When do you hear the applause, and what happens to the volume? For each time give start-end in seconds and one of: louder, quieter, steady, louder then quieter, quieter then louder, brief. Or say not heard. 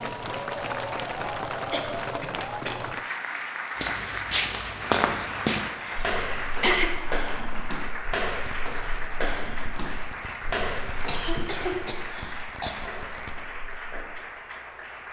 0.0-15.0 quieter.